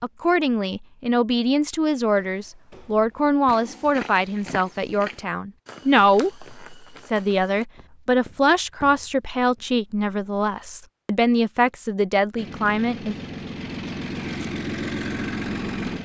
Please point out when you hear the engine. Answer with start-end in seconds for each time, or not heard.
12.3-16.0.